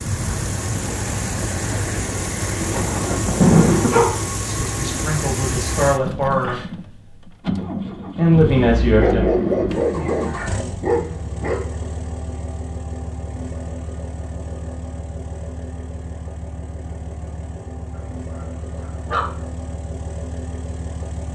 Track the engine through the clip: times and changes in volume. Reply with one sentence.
You can hear the engine from 0.0 to 21.2 s, getting quieter.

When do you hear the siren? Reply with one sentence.
The siren can't be heard in this clip.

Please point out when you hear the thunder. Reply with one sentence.
You can hear the thunder from 2.4 to 4.0 s.